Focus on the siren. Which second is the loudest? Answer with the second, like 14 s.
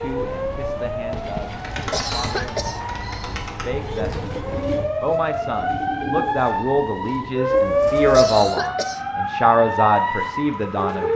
8 s.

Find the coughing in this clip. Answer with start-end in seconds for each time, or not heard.
1.9-3.4, 8.1-9.0.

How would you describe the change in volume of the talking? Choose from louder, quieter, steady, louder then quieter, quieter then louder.
louder.